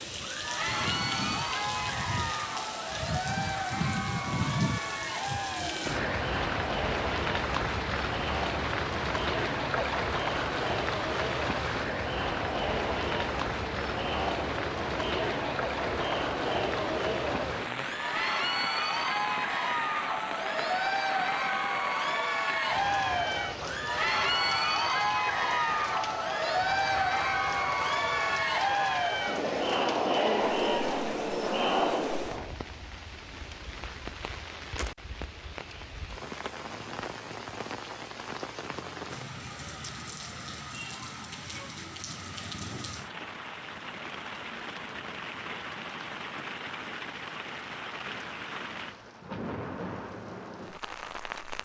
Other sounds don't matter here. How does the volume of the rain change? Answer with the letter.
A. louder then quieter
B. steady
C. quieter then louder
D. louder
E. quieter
E.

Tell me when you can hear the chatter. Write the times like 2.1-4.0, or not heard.
0.1-32.5.